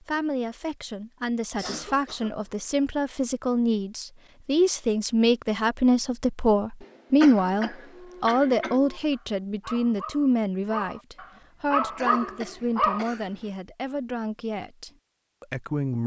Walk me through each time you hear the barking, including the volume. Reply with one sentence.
The barking can be heard from 7.9 to 13.1 s, getting louder.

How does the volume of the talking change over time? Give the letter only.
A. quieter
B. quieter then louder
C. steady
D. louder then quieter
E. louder
D.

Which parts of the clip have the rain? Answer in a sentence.
You can't hear the rain here.